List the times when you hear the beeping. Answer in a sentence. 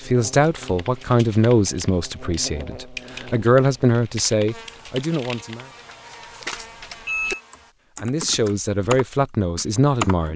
The beeping can be heard from 6.4 to 7.4 s.